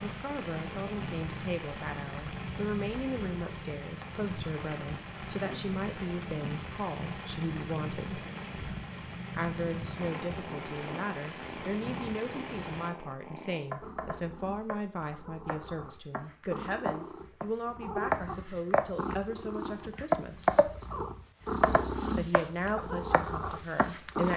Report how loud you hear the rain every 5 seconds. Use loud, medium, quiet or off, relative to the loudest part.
loud, loud, loud, off, off.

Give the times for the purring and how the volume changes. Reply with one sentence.
The purring can be heard from 0.0 to 24.3 s, getting louder.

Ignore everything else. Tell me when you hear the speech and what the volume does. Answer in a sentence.
The speech can be heard from 0.0 to 8.2 s, at a steady volume; from 9.3 to 20.7 s, at a steady volume; and briefly from 22.1 to 24.3 s.